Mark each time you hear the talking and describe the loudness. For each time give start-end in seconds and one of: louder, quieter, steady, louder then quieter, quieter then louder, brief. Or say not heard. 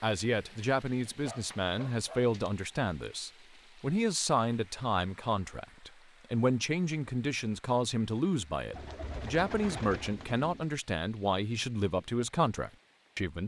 0.0-13.4 steady.